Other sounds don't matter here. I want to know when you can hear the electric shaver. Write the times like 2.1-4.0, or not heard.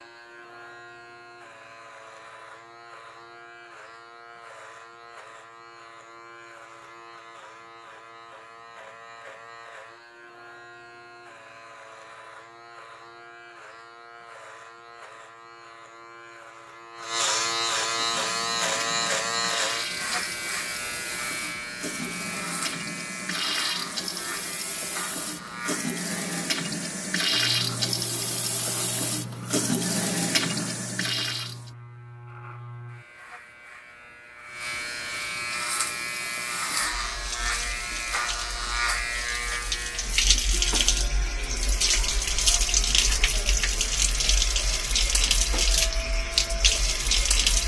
0.0-47.6.